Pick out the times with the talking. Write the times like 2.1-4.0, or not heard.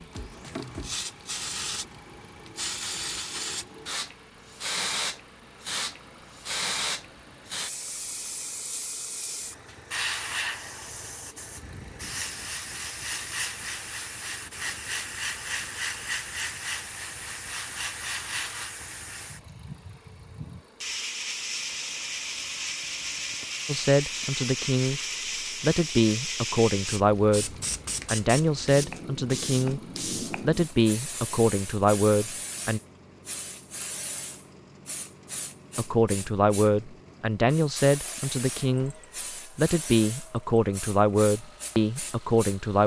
23.6-25.0, 25.6-29.8, 30.4-32.8, 35.8-39.0, 39.5-42.8.